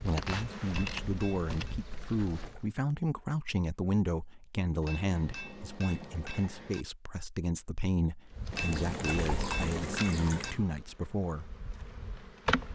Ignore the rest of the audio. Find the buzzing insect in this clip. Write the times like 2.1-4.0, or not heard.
0.0-2.6, 8.3-12.7.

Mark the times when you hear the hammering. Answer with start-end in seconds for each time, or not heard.
0.2-1.8, 4.8-6.8, 8.5-10.6.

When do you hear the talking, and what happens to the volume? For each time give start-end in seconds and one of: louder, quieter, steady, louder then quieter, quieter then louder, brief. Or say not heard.
0.0-11.5 steady.